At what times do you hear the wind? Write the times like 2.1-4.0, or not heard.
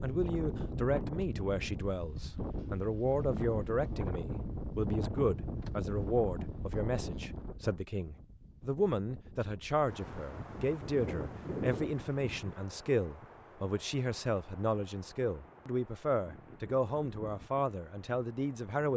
0.0-18.9.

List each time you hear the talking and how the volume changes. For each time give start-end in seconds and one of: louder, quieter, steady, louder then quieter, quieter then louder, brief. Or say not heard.
0.0-18.9 steady.